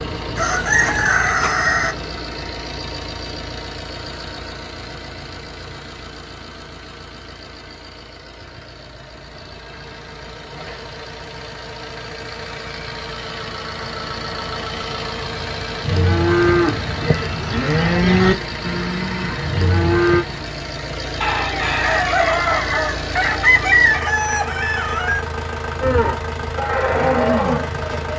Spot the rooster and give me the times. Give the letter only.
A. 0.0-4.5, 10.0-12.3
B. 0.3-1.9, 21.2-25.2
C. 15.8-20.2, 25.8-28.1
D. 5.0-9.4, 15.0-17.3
B.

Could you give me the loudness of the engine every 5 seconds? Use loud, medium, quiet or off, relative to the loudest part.
loud, medium, loud, loud, loud, loud.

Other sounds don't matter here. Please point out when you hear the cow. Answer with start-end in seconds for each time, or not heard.
15.8-20.2, 25.8-28.1.